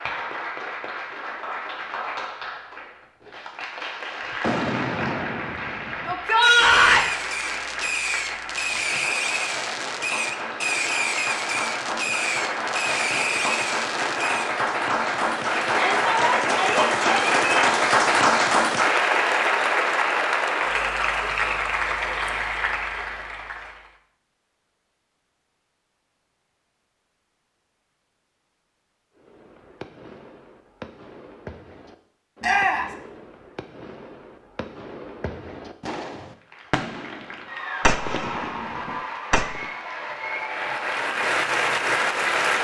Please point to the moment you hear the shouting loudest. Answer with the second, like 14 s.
7 s.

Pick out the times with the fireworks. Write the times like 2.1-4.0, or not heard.
4.4-14.6, 29.1-39.7.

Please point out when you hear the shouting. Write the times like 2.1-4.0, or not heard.
6.0-7.0, 15.7-17.4, 32.4-33.0.